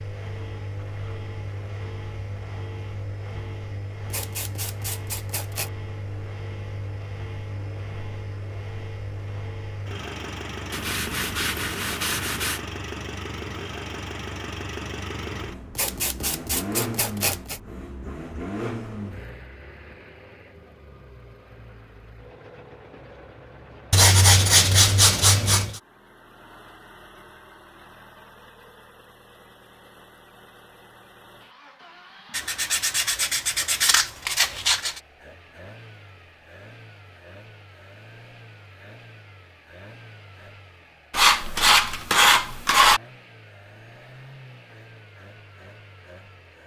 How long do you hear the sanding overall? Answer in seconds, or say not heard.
12 s.